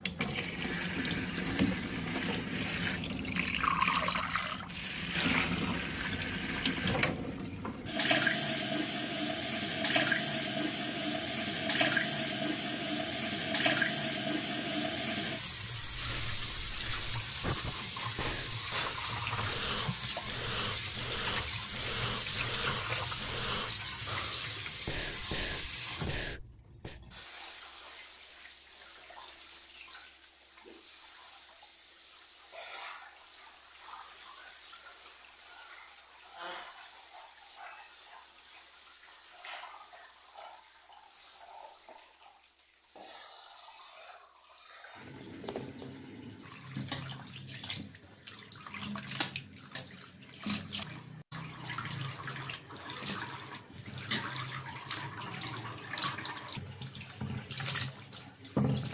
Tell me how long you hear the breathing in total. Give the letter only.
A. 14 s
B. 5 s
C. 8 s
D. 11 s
D.